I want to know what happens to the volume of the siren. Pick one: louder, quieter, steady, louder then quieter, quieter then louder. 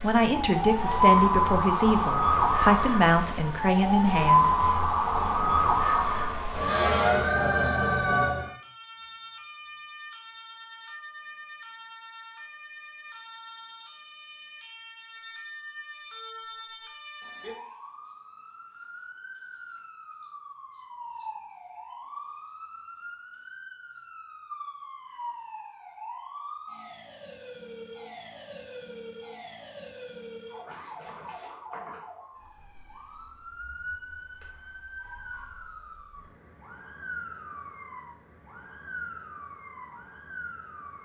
quieter.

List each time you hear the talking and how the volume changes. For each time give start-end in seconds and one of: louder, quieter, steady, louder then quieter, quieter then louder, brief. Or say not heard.
0.0-4.8 steady.